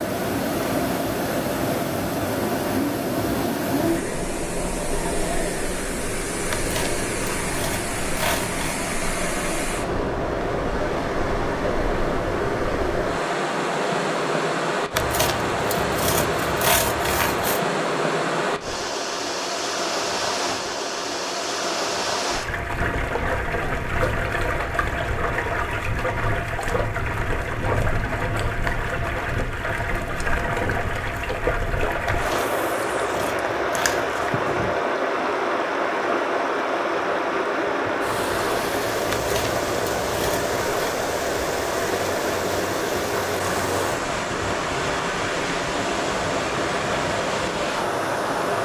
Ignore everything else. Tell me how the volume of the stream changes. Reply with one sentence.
The loudness of the stream stays about the same.